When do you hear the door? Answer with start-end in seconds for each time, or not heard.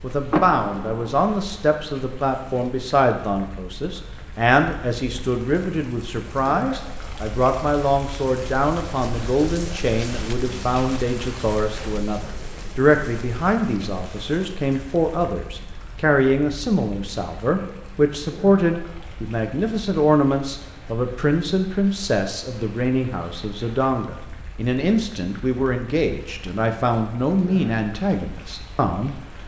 0.3-1.2.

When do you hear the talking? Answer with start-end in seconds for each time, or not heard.
0.0-29.4.